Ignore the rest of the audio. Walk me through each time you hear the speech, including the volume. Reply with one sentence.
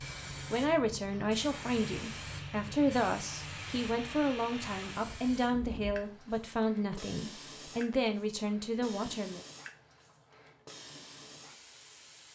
The speech can be heard from 0.5 to 9.4 s, at a steady volume.